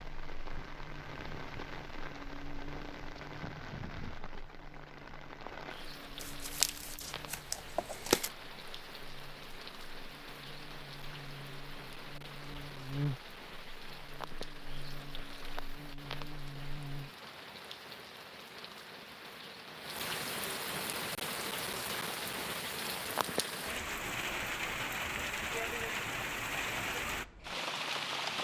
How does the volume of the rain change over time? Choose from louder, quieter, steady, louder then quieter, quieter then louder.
louder.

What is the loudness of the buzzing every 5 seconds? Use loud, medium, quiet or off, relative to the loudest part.
medium, quiet, loud, loud, off, off.